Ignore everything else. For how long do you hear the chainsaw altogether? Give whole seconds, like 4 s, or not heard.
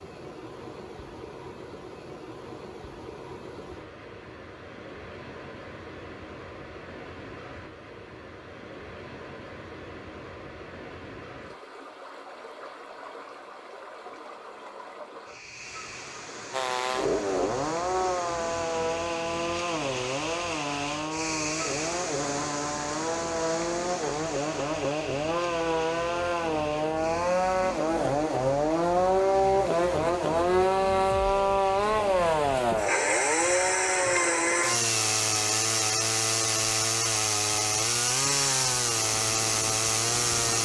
24 s.